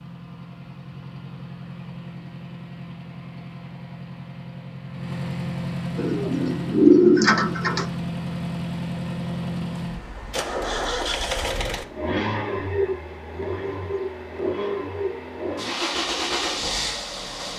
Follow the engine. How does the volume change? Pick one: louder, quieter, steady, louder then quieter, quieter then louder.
louder.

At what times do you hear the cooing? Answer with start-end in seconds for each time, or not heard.
6.0-7.8.